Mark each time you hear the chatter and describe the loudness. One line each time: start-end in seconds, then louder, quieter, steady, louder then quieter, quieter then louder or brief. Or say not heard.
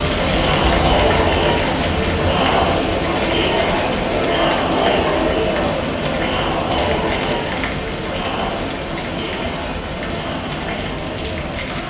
0.0-11.8 quieter.